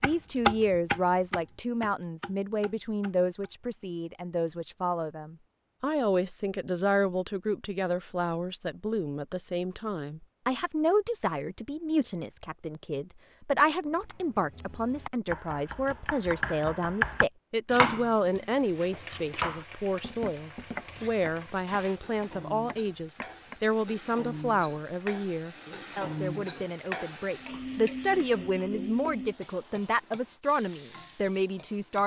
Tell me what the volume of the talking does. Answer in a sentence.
The loudness of the talking stays about the same.